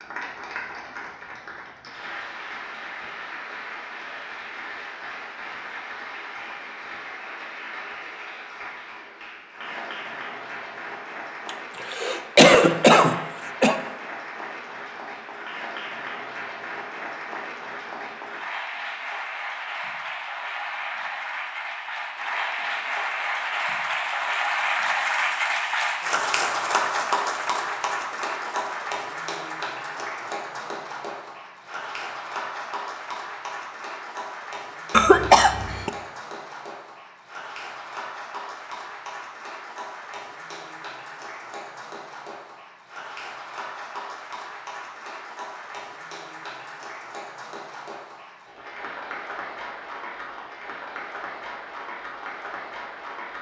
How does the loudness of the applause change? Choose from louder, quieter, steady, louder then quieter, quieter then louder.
louder then quieter.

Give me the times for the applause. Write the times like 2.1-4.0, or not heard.
0.0-53.3.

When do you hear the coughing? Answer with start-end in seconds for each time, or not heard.
11.4-13.8, 34.9-35.9.